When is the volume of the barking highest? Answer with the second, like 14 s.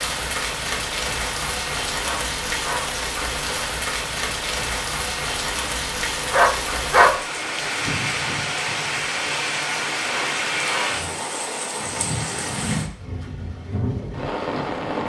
7 s.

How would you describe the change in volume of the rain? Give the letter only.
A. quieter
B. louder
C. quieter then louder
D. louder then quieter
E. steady
E.